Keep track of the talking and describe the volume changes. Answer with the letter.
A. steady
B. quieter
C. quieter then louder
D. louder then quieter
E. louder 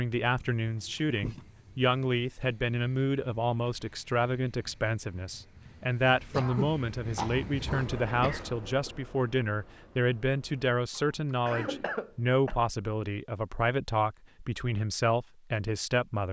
A.